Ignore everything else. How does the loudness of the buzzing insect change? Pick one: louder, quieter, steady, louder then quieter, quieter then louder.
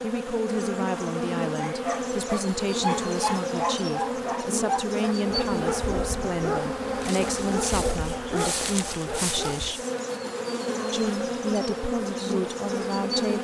steady.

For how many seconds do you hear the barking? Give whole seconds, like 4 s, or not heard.
8 s.